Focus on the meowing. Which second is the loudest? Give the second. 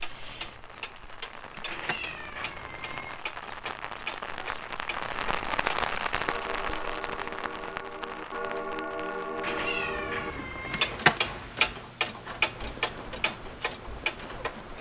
10 s.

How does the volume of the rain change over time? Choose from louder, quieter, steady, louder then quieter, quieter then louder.
louder then quieter.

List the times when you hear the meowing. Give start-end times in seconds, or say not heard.
1.6-3.2, 9.4-10.9.